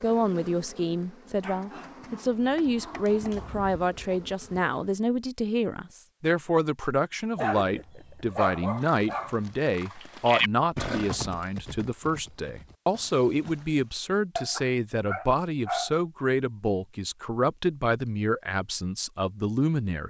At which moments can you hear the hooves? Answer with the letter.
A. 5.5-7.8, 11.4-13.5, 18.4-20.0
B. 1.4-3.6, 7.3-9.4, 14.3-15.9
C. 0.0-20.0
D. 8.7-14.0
D.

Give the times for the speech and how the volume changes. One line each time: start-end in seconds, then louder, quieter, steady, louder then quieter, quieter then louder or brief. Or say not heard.
0.0-20.0 steady.